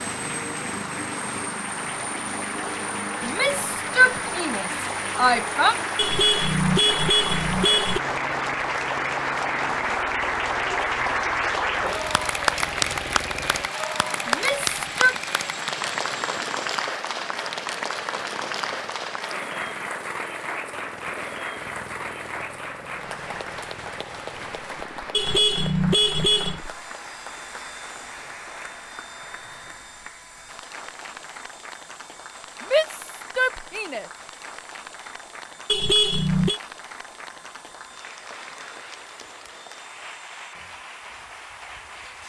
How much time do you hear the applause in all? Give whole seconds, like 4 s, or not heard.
42 s.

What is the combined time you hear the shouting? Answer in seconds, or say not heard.
5 s.